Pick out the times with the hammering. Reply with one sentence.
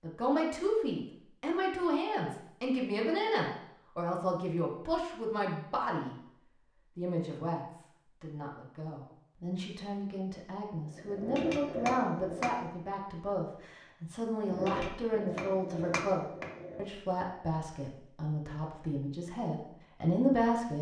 You can hear the hammering from 10.8 to 12.6 s and from 14.4 to 16.9 s.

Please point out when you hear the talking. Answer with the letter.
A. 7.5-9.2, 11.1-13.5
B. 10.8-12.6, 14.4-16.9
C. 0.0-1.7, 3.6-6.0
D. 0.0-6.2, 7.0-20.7
D.